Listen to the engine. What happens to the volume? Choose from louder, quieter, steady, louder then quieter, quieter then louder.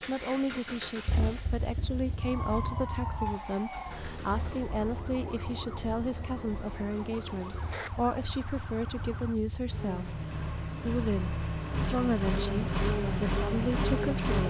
quieter then louder.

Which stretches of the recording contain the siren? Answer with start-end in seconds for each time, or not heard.
2.2-9.4.